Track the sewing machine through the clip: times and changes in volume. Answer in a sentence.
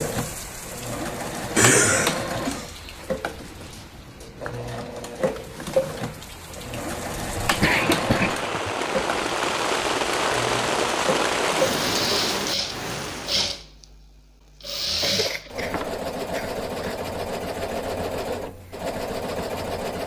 The sewing machine can be heard from 0.0 to 20.0 s, at a steady volume.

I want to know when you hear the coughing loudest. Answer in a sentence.
The loudest moment of the coughing is at 2 seconds.